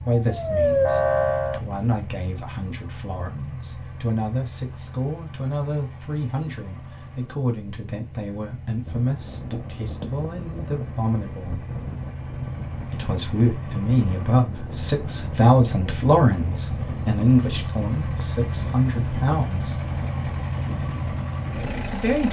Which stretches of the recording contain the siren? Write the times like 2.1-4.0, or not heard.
0.2-1.6.